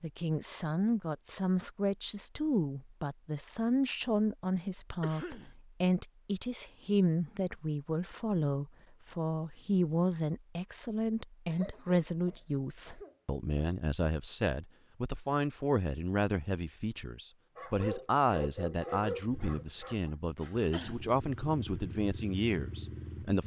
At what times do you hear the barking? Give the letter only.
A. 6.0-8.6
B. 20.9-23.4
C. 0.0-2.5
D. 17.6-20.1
D.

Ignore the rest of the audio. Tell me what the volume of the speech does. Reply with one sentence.
The volume of the speech stays about the same.